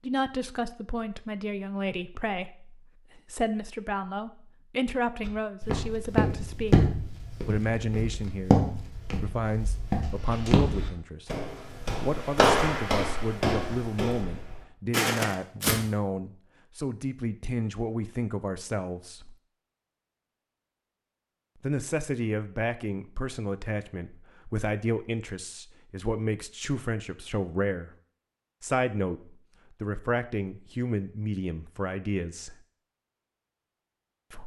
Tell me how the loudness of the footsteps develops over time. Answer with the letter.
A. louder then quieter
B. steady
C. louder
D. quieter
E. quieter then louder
B.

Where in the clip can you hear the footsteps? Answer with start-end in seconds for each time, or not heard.
5.2-15.8.